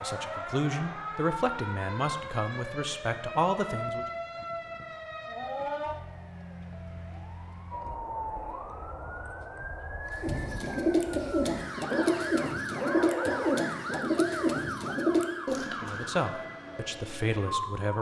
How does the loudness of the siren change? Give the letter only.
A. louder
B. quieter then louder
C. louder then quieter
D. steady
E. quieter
D.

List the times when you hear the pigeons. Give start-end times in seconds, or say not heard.
10.1-16.1.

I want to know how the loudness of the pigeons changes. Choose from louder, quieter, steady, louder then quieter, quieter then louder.
steady.